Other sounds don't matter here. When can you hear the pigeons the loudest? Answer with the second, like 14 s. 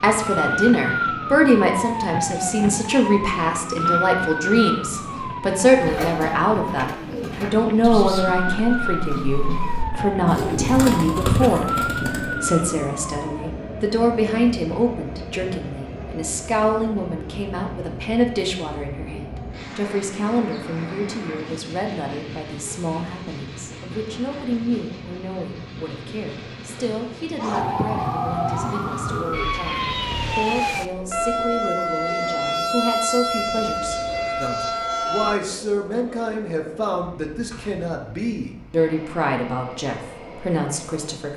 11 s.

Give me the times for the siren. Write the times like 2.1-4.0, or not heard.
0.0-13.5, 27.4-35.4.